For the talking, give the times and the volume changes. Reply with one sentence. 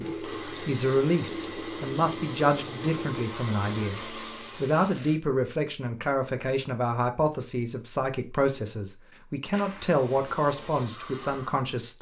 You can hear the talking from 0.0 to 11.9 s, at a steady volume.